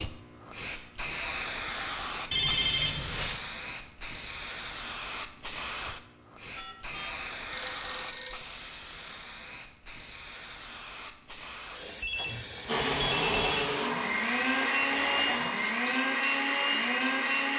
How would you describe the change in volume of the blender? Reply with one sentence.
The volume of the blender stays about the same.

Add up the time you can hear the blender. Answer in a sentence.
The blender can be heard for 5 seconds in total.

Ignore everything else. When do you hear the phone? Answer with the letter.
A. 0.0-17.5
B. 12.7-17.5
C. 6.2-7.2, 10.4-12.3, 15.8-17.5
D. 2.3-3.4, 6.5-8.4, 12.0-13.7
D.